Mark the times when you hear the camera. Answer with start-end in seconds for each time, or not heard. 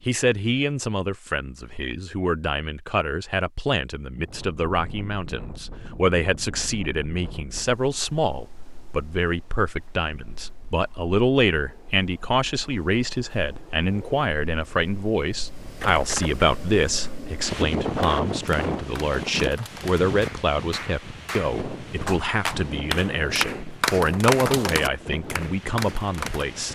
15.8-16.4.